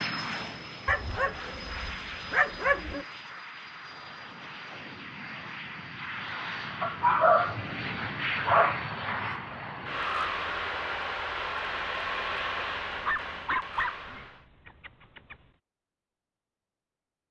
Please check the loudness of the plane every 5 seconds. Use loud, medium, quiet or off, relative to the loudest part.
medium, loud, loud, off.